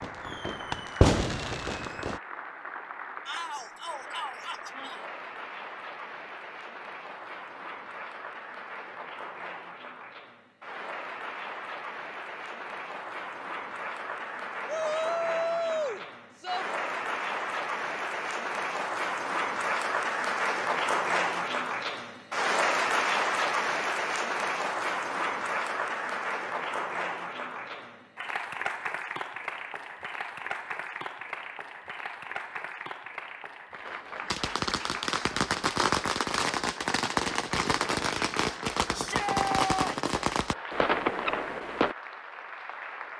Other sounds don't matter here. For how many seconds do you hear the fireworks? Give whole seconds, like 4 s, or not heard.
10 s.